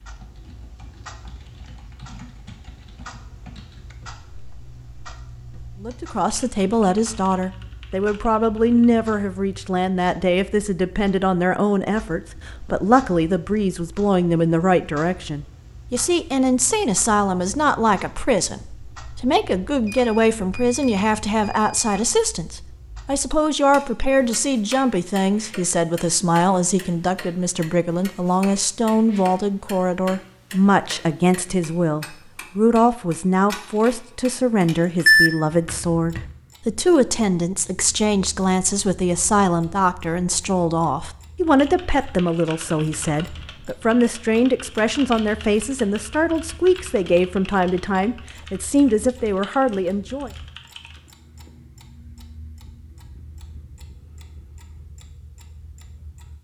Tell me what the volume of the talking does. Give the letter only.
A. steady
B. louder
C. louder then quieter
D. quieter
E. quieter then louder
A.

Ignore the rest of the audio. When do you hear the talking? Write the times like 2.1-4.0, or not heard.
5.8-50.3.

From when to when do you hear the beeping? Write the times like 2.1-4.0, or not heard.
19.9-21.9, 35.0-36.2.